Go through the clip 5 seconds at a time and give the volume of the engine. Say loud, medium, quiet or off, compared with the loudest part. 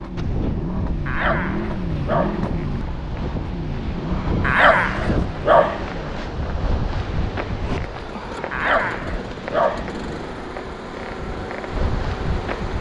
loud, medium, medium.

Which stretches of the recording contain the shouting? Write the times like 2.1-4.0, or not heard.
not heard.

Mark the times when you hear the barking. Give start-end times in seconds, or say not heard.
1.1-2.5, 4.4-5.8, 8.5-9.9.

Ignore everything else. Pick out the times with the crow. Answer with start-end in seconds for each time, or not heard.
not heard.